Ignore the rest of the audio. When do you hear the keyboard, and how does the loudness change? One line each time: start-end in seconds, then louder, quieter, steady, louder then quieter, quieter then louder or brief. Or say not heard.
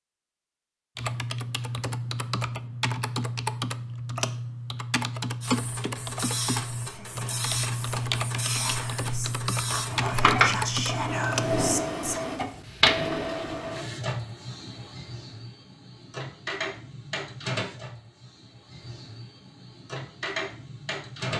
0.9-11.7 steady.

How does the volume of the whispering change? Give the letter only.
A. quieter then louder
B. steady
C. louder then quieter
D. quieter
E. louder
E.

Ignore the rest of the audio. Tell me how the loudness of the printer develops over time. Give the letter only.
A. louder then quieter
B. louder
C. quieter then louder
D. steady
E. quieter
A.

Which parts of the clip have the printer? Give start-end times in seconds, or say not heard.
5.4-21.3.